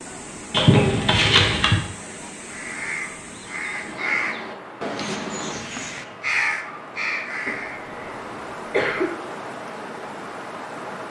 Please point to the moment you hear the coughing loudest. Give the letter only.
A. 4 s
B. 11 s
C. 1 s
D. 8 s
C.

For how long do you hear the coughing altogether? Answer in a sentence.
The coughing can be heard for 3 seconds in total.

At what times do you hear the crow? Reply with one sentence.
You can hear the crow from 2.4 to 7.8 s.